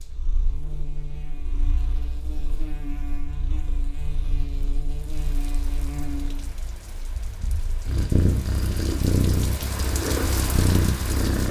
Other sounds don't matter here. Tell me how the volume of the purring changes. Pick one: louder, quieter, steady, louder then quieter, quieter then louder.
louder.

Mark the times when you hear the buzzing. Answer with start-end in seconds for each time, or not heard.
0.0-6.5.